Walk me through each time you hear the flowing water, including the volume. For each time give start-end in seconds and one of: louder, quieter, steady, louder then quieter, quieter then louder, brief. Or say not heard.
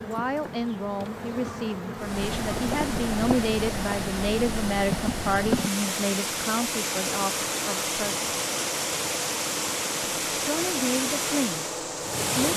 1.9-12.5 steady.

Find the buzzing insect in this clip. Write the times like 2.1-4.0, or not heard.
0.0-12.5.